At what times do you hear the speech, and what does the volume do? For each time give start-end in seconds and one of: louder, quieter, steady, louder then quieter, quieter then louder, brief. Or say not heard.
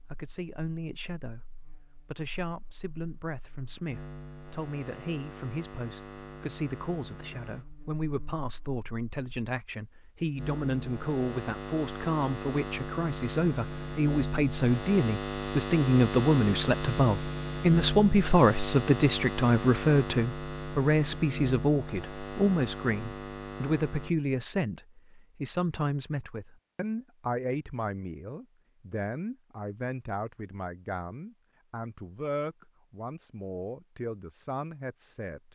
0.0-35.4 louder then quieter.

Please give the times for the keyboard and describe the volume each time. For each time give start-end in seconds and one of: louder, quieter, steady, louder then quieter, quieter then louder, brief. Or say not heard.
not heard.